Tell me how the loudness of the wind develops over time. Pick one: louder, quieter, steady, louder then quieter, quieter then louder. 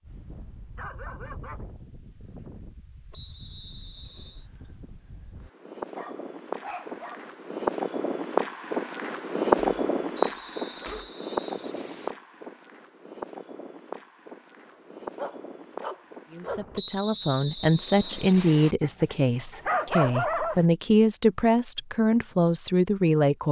louder then quieter.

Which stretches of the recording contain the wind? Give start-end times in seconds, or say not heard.
0.0-16.8.